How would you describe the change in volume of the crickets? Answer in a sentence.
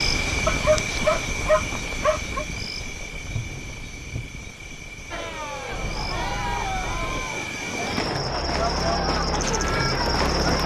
The loudness of the crickets goes down, then up.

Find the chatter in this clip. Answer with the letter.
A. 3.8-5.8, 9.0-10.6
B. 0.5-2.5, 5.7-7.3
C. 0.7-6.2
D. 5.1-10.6
D.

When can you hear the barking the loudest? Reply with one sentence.
The loudest moment of the barking is at 1 second.